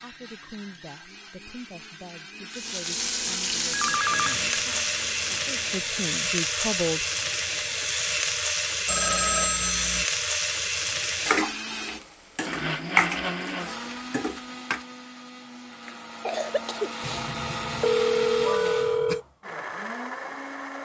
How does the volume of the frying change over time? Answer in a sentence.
The volume of the frying stays about the same.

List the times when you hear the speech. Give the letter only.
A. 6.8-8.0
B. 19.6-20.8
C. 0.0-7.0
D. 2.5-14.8
C.